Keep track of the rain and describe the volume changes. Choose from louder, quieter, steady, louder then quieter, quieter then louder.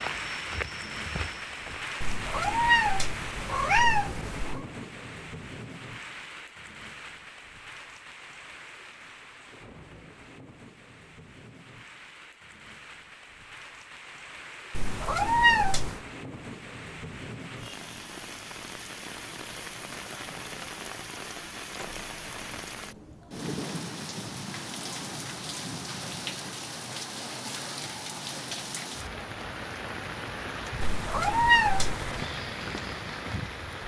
quieter then louder.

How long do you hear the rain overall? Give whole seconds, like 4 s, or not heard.
34 s.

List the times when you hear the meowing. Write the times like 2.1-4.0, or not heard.
2.0-4.7, 14.8-16.0, 30.8-32.2.